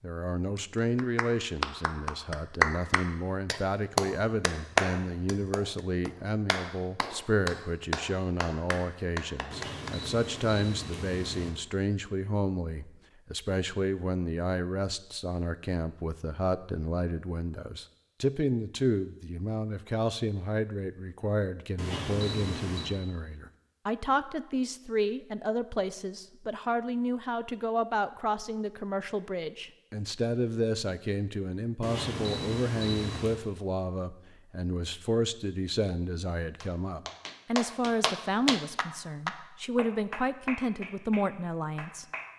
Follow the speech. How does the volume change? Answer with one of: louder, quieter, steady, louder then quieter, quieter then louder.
steady.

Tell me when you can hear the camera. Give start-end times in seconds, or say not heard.
9.5-11.5, 21.8-22.9, 31.8-33.4.